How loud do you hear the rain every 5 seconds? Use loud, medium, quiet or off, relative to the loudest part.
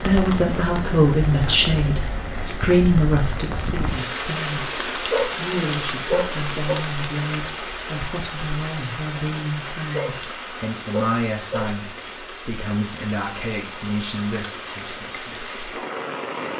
loud, loud, medium, loud.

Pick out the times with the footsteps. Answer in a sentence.
You can't hear the footsteps here.